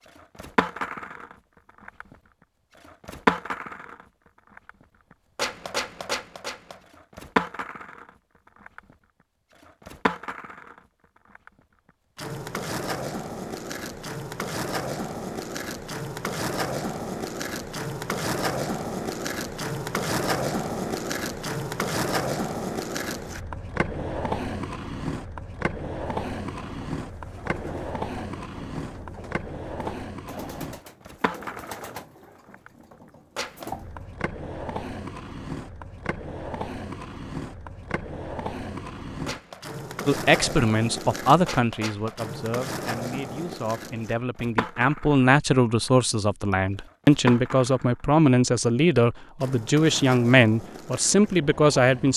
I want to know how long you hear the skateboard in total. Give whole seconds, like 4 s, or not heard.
52 s.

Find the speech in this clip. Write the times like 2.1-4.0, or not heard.
40.0-52.1.